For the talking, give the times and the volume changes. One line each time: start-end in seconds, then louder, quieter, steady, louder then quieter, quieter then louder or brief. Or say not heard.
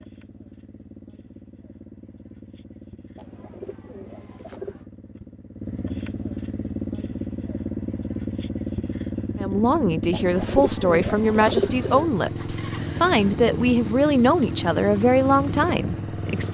9.4-16.5 steady.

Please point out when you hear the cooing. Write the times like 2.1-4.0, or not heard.
3.1-4.8, 10.1-12.1.